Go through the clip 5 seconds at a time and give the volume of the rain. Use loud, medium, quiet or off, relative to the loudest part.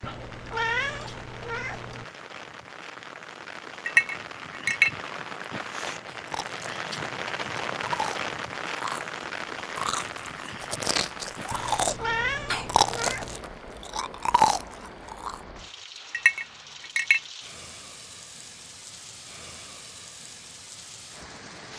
medium, loud, medium, medium, medium.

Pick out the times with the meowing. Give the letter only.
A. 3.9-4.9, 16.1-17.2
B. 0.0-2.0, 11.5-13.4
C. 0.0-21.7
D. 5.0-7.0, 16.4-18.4
B.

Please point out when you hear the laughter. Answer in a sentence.
The laughter can't be heard in this clip.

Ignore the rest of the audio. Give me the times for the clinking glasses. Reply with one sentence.
The clinking glasses can be heard from 3.9 to 4.9 s and from 16.1 to 17.2 s.